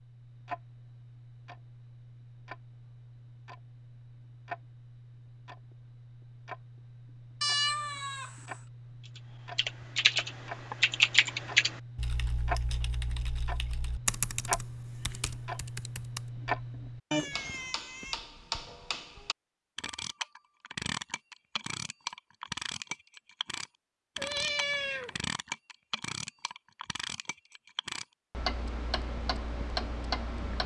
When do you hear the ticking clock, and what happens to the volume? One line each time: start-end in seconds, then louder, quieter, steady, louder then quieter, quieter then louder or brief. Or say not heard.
0.0-30.6 louder.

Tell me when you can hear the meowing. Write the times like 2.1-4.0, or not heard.
7.4-8.6, 17.1-18.1, 24.1-25.2.